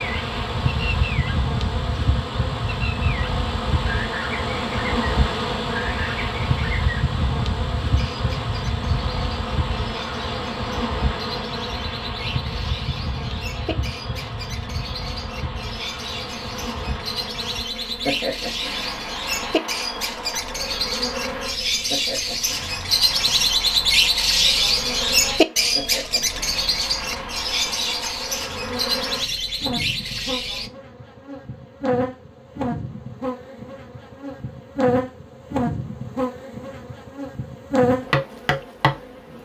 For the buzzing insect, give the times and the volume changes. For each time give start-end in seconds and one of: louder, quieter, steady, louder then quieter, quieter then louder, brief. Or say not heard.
0.0-39.3 quieter then louder.